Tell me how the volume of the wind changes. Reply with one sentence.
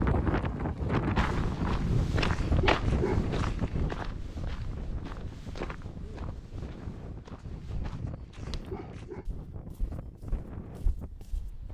The volume of the wind goes down.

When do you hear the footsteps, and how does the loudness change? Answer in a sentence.
The footsteps can be heard from 1.1 to 11.5 s, getting quieter.